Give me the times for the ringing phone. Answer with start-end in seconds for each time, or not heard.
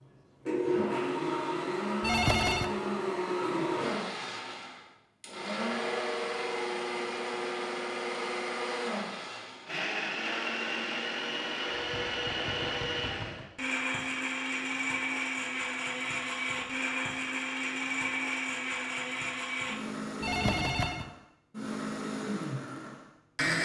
2.0-2.7, 11.7-13.4, 20.2-21.1.